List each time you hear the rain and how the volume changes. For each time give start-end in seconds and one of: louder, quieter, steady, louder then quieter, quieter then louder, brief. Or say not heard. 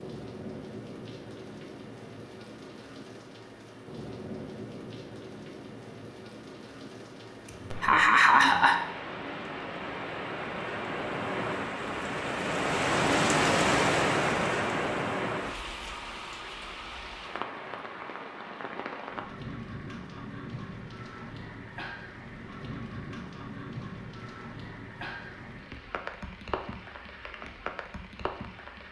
0.0-28.8 louder then quieter.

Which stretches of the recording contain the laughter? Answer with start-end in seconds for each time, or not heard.
7.5-8.8.